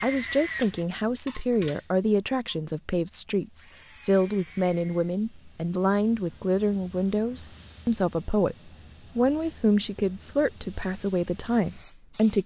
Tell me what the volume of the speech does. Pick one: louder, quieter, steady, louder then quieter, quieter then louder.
steady.